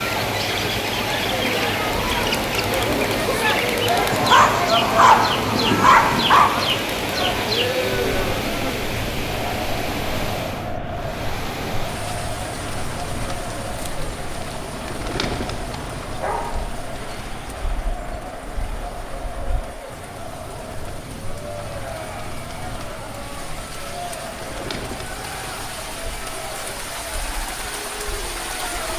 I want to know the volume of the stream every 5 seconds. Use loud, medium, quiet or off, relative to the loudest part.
loud, loud, medium, quiet, quiet, medium.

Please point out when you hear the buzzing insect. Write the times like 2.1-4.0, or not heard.
not heard.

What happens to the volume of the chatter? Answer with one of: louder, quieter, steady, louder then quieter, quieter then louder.
quieter.